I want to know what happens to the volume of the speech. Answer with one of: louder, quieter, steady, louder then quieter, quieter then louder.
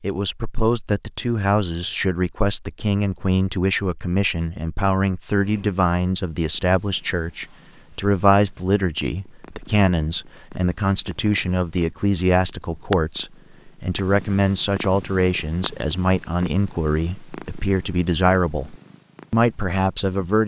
steady.